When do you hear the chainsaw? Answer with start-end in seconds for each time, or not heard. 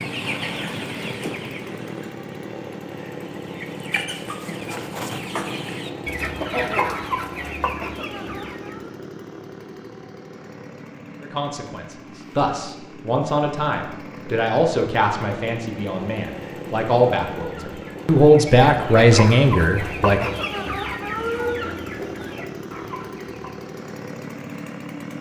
0.0-25.1.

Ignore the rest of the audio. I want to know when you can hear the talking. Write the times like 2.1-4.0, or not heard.
11.2-20.3.